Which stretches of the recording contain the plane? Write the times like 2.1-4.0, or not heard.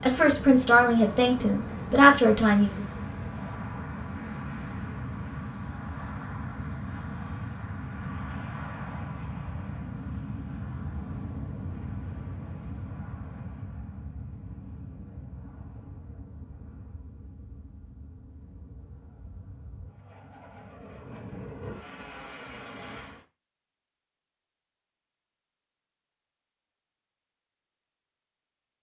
0.0-23.2.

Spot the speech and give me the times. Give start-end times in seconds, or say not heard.
0.0-2.9.